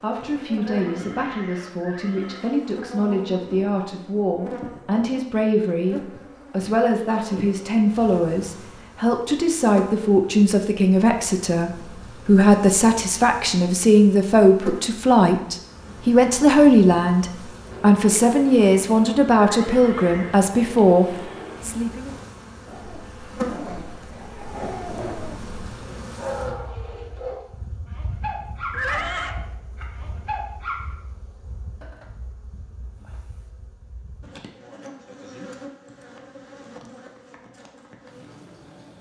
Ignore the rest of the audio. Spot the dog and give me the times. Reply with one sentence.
You can hear the dog from 22.6 to 30.8 s.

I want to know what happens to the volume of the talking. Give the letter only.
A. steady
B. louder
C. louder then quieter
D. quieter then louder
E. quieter
B.